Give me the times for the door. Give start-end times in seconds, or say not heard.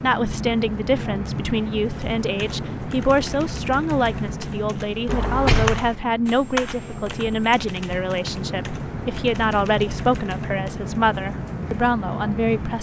5.0-6.0.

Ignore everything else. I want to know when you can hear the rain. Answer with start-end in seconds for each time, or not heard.
0.0-12.7.